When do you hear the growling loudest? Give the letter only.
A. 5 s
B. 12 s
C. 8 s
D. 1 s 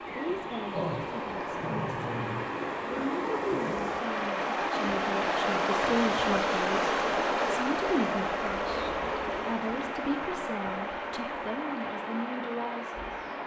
D.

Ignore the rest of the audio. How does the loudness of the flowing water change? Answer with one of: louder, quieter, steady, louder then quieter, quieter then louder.
louder then quieter.